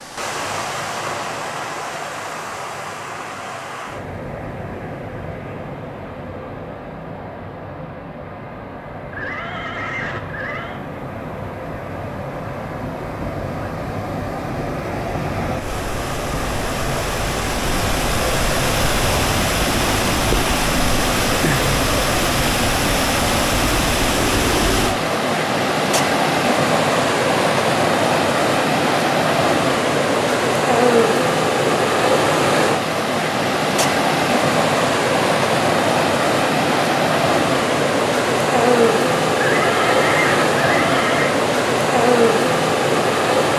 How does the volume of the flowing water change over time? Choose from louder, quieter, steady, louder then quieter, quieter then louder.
louder.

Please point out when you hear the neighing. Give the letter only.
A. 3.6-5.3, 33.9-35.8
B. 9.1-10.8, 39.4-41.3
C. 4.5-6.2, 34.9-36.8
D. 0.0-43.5
B.